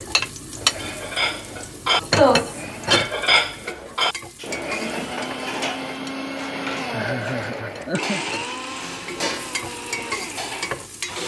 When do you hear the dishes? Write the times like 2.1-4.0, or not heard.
0.8-11.2.